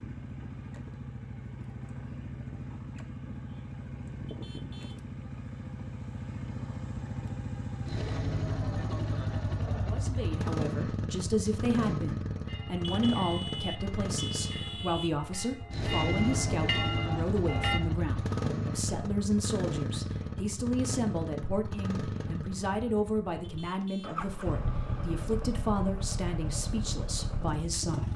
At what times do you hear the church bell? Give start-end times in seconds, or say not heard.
12.4-17.8.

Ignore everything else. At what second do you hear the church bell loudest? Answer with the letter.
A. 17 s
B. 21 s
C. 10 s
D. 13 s
A.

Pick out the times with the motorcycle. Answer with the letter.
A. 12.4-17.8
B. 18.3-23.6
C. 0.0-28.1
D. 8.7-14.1
C.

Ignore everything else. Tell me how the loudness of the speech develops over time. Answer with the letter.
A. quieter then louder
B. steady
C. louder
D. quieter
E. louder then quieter
B.